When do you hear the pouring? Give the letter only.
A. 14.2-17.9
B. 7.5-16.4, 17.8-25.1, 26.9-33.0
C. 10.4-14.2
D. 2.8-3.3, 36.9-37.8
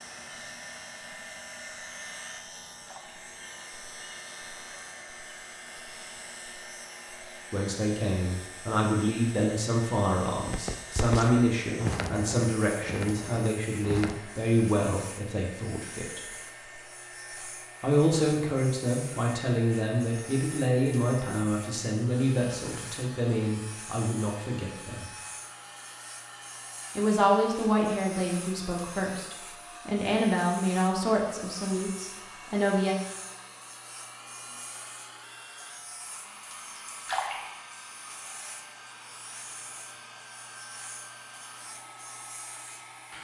D.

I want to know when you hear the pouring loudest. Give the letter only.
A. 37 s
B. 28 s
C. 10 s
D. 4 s
A.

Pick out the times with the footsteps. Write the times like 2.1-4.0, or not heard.
10.4-14.2.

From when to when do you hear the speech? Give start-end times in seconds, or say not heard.
7.5-16.4, 17.8-25.1, 26.9-33.0.